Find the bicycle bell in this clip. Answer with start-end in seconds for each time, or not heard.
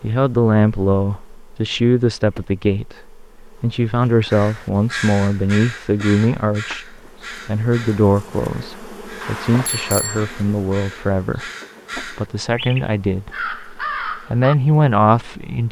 9.2-10.2.